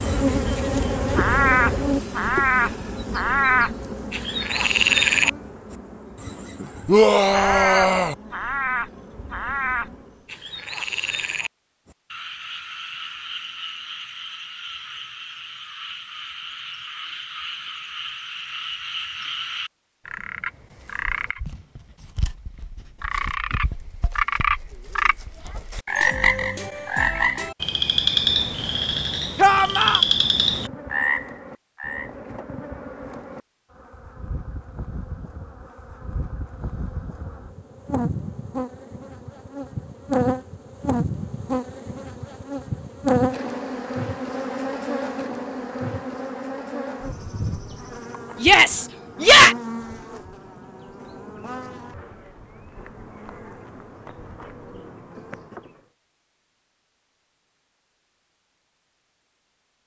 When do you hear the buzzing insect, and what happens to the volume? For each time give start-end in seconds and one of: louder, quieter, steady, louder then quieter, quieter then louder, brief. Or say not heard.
0.0-10.3 quieter
30.4-55.9 louder then quieter.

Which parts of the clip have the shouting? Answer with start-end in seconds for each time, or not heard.
6.8-8.2, 29.4-30.0, 48.4-49.5.